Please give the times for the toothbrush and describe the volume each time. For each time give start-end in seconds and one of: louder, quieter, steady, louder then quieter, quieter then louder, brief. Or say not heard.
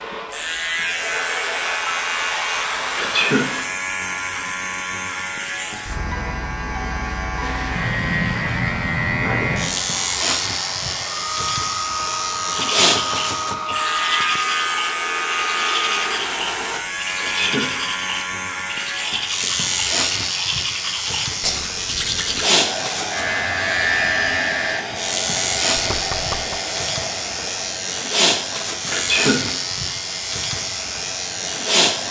12.6-22.4 steady.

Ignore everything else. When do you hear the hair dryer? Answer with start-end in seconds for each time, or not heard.
0.0-3.7, 7.4-16.8, 22.4-32.0.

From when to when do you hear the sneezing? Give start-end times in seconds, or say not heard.
3.0-3.5, 17.1-17.6, 28.9-29.4.